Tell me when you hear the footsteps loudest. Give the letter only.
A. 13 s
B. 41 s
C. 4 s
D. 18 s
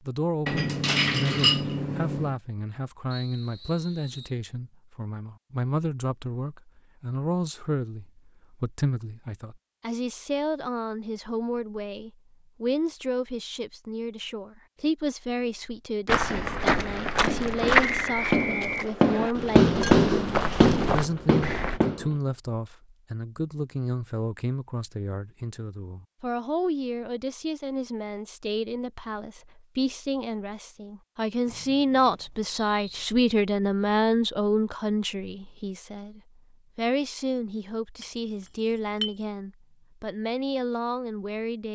D.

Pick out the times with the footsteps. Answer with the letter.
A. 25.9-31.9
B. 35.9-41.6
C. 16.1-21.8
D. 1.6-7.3
C.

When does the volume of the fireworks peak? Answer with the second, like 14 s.
20 s.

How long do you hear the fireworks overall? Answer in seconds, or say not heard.
6 s.